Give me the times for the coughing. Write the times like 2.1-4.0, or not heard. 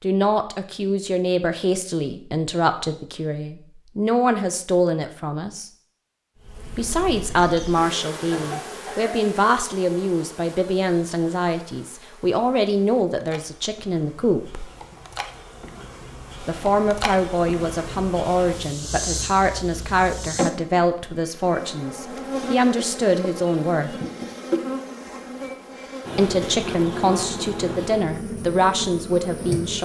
8.3-9.2.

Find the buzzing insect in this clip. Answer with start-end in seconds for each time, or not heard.
6.4-29.8.